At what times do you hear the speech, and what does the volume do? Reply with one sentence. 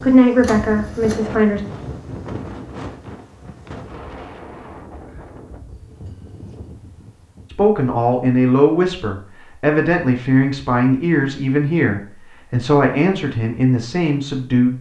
You can hear the speech briefly from 0.0 to 1.6 s; and from 7.5 to 14.7 s, at a steady volume.